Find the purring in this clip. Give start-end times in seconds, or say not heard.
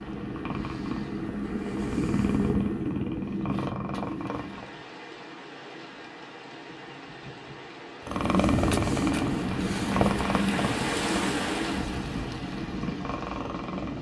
0.0-4.7, 8.1-13.9.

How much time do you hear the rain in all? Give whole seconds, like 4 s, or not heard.
10 s.